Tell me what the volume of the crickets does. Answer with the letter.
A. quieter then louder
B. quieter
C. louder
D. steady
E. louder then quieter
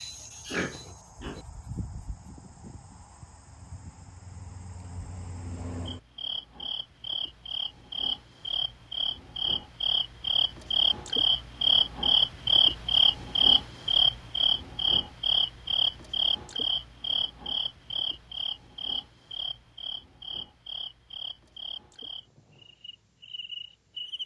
E.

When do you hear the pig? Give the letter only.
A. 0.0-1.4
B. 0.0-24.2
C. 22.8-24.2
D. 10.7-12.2
A.